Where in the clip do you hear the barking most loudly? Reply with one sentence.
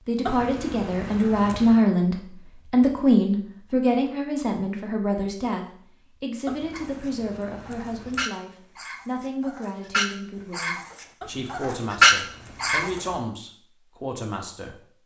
The loudest moment of the barking is at 12 seconds.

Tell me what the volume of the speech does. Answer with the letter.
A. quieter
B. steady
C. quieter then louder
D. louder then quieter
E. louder
A.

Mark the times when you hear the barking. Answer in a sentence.
The barking can be heard from 6.7 to 12.9 s.